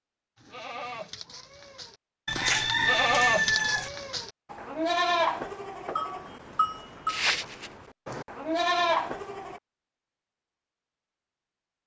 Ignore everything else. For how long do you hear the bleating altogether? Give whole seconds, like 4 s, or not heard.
9 s.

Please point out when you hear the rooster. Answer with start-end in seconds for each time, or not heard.
2.2-3.9.